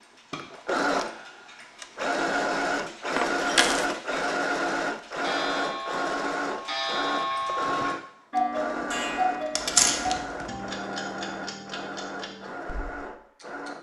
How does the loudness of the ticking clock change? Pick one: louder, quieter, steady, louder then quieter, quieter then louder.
louder then quieter.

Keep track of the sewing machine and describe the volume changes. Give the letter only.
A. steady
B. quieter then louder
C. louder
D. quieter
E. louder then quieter
D.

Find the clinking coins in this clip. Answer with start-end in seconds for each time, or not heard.
3.1-3.9, 9.6-10.4.